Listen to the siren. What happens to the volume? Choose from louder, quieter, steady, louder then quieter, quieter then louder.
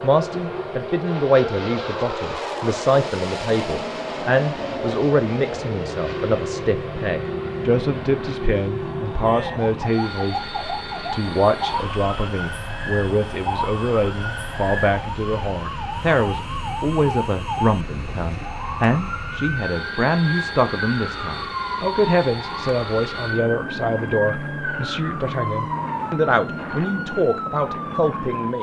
steady.